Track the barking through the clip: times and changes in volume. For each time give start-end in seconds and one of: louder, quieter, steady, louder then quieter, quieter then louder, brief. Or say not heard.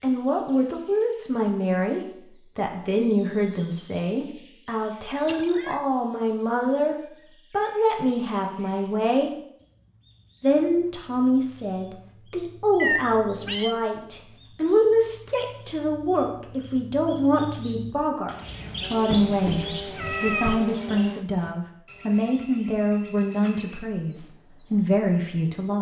not heard.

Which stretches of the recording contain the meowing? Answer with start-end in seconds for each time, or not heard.
5.2-5.8, 12.8-13.8, 19.1-20.6.